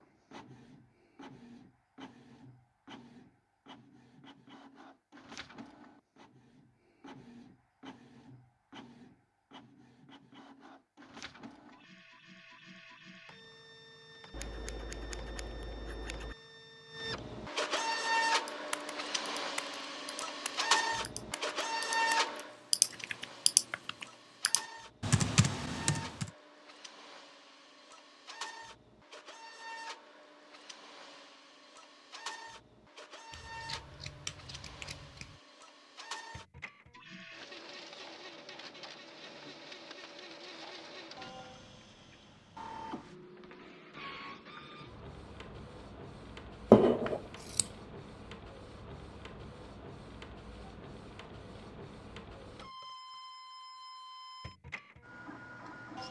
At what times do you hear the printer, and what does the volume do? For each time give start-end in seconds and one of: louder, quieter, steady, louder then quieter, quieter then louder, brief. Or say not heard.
0.0-56.0 louder then quieter.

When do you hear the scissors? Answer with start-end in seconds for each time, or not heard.
14.3-16.4, 33.3-35.4, 46.7-47.7.